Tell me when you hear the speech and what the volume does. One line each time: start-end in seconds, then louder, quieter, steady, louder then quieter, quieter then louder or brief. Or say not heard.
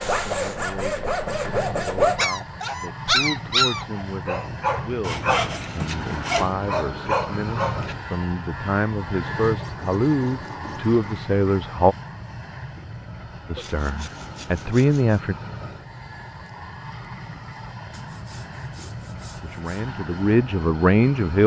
0.1-11.9 louder
13.5-15.3 brief
19.4-21.4 brief.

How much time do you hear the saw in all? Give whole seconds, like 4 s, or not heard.
9 s.